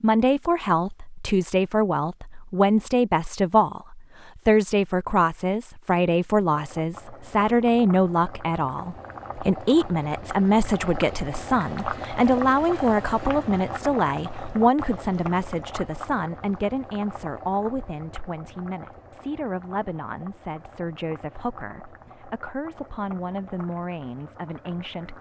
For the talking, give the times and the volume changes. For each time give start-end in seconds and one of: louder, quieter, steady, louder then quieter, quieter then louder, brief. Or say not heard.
0.0-25.1 quieter.